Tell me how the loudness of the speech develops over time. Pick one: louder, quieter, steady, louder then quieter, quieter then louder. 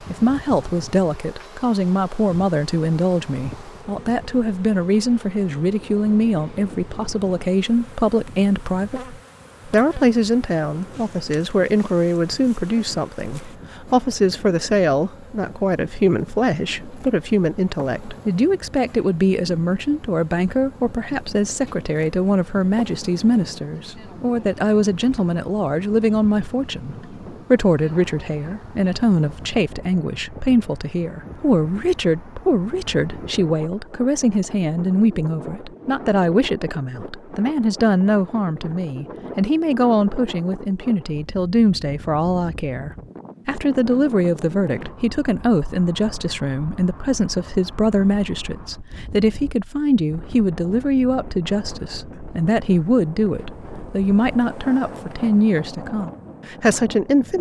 steady.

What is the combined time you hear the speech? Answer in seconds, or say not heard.
57 s.